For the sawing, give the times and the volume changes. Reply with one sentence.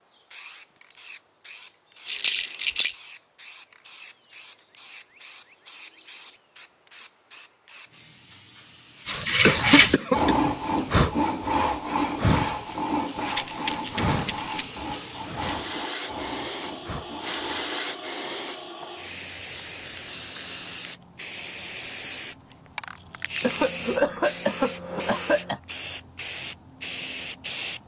The sawing can be heard from 9.1 to 17.8 s, getting quieter.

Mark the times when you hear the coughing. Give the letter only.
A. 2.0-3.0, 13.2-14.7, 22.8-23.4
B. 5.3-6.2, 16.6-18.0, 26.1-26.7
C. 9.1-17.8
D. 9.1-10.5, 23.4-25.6
D.